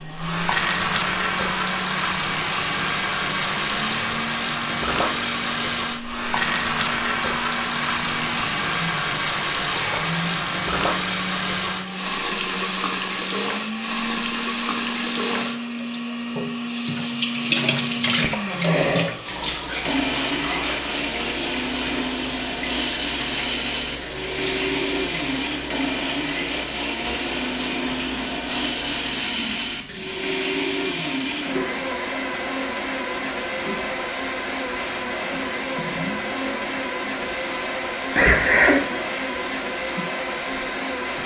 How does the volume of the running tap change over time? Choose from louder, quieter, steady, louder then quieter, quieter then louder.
quieter.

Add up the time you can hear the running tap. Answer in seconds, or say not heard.
41 s.